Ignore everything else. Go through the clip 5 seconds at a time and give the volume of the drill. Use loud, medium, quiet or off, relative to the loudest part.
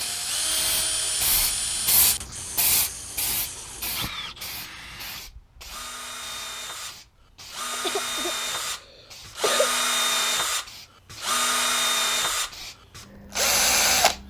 medium, medium, loud.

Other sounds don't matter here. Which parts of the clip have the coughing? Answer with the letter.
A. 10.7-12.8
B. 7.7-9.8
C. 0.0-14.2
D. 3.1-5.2
B.